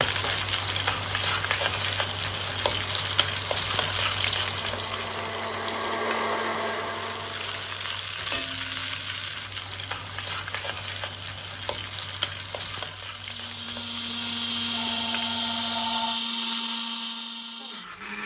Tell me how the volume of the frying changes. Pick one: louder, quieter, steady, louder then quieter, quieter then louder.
quieter.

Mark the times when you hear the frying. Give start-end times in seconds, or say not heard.
0.0-16.1.